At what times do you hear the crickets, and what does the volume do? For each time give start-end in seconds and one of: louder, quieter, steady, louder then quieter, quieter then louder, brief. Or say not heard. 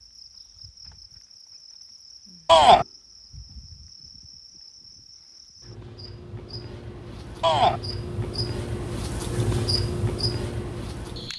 0.0-11.3 louder.